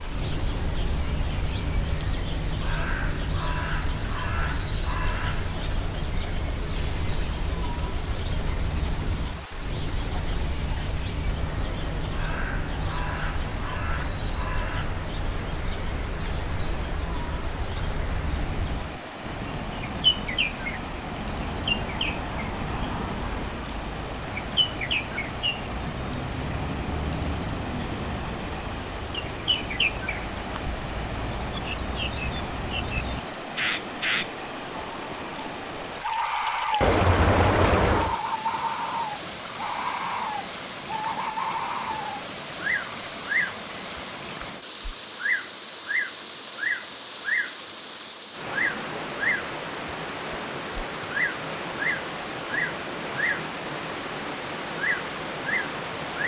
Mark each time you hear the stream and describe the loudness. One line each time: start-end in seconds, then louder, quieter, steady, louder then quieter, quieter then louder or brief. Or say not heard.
0.0-56.2 louder.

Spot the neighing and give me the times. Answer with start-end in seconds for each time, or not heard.
36.8-38.1.